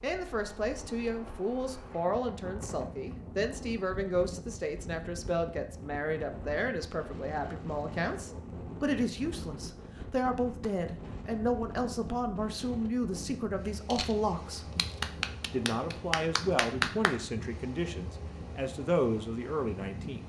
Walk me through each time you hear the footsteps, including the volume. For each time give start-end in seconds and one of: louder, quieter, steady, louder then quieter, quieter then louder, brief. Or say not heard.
not heard.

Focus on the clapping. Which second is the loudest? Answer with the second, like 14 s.
17 s.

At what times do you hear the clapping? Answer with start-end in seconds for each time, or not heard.
14.8-17.1.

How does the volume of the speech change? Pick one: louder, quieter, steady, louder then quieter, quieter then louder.
steady.